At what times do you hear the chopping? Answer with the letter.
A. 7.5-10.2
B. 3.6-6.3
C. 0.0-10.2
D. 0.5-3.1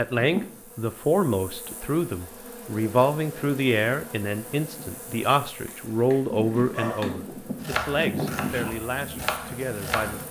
A.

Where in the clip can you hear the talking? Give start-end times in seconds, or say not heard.
0.0-10.2.